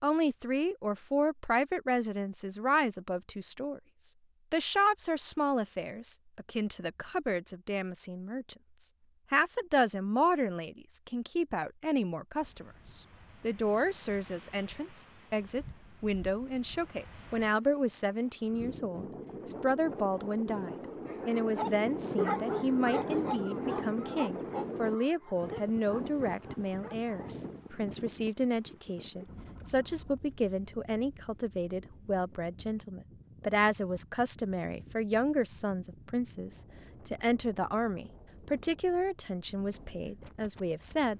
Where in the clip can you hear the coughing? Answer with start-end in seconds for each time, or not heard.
not heard.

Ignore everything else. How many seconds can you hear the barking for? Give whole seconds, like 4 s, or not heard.
6 s.